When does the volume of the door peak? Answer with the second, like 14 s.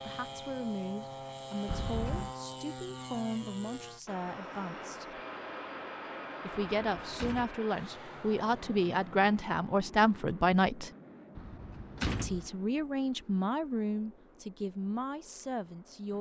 12 s.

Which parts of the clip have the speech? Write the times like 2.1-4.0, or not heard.
0.0-5.2, 6.4-10.9, 12.2-16.1.